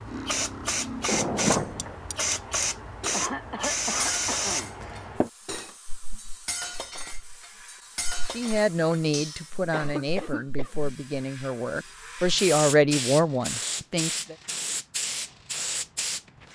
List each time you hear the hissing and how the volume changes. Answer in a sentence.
You can hear the hissing from 0.0 to 16.4 s, getting quieter then louder.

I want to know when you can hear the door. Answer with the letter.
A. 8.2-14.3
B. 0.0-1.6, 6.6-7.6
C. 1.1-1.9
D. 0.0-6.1
C.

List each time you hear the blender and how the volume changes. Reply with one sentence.
The blender can't be heard in this clip.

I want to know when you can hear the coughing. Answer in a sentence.
The coughing can be heard from 3.1 to 4.8 s and from 9.7 to 10.7 s.